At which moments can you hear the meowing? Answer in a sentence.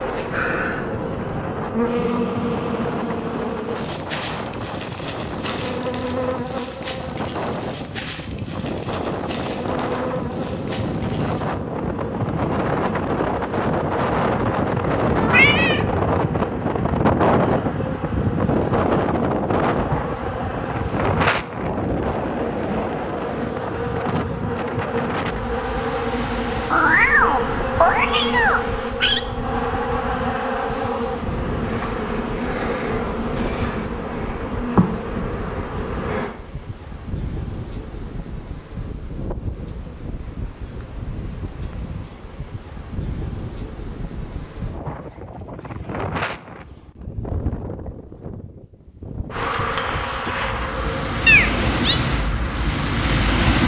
You can hear the meowing from 15.2 to 15.8 s, from 26.7 to 29.2 s and from 51.2 to 52.0 s.